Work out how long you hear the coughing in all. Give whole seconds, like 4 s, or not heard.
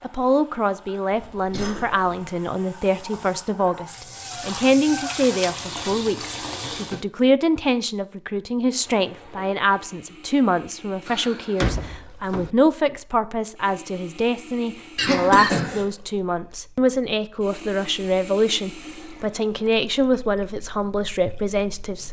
2 s.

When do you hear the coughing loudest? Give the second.
15 s.